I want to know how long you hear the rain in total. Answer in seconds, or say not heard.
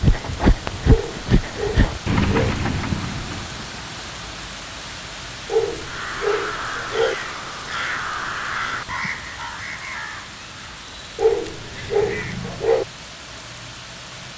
14 s.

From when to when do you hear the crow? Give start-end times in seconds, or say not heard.
5.8-12.8.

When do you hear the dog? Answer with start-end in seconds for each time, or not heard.
0.8-2.5, 5.5-7.2, 11.2-12.8.